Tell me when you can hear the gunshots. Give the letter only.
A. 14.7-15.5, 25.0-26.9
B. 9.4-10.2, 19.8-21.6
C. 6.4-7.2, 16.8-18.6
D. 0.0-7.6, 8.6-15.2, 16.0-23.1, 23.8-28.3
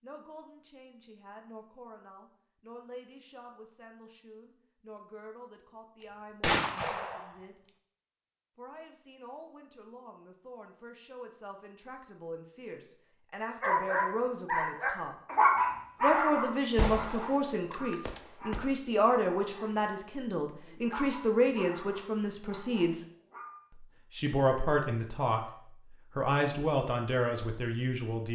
C.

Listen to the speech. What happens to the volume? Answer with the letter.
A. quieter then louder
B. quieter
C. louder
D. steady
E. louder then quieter
C.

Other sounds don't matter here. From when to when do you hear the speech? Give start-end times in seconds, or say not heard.
0.0-7.6, 8.6-15.2, 16.0-23.1, 23.8-28.3.